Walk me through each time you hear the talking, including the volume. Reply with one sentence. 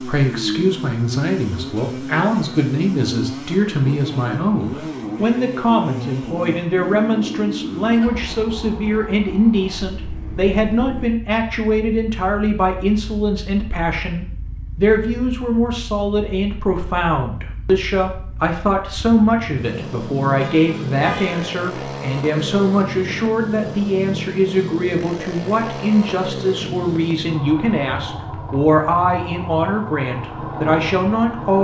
The talking can be heard from 0.0 to 31.6 s, at a steady volume.